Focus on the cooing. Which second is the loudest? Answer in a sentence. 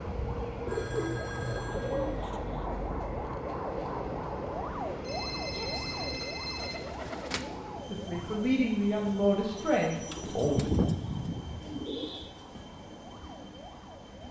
The loudest moment of the cooing is at 11 seconds.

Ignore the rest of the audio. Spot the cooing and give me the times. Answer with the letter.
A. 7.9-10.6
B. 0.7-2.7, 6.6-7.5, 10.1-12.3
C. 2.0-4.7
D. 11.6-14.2
B.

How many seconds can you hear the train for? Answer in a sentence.
You can hear the train for 14 seconds altogether.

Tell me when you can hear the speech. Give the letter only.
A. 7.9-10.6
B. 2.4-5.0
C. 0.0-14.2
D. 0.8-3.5
A.